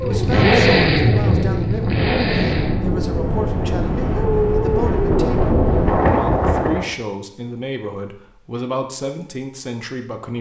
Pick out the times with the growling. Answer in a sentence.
You can't hear the growling here.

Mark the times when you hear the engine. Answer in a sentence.
You can hear the engine from 0.0 to 3.0 s.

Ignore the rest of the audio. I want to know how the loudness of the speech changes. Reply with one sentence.
The loudness of the speech stays about the same.